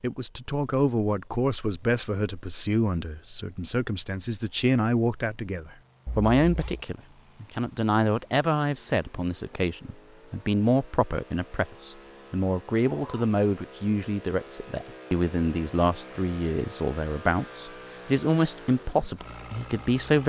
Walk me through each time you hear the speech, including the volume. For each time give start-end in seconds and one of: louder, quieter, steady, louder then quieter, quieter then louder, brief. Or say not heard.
0.0-20.2 steady.